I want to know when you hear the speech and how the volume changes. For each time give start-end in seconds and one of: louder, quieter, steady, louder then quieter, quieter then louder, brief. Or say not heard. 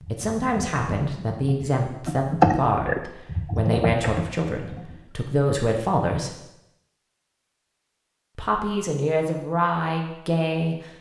0.1-6.3 steady
8.3-10.8 brief.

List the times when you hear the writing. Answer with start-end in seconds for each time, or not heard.
not heard.